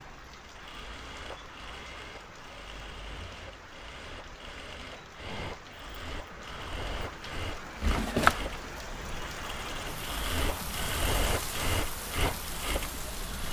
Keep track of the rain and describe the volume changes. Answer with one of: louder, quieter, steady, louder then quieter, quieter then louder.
louder.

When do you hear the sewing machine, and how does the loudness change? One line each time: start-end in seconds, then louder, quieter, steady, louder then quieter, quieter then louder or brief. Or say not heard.
0.0-13.4 louder.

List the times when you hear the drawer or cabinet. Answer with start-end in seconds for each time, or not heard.
7.8-8.7.